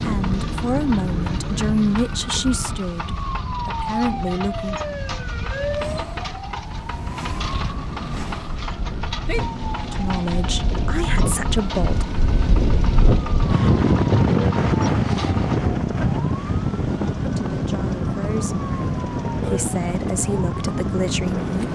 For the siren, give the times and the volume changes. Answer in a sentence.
The siren can be heard from 0.1 to 21.7 s, at a steady volume.